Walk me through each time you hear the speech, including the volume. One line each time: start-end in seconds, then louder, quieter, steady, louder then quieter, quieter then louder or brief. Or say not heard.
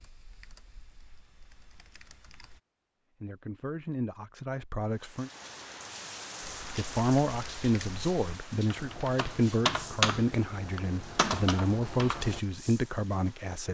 3.2-5.3 brief
6.7-13.6 steady.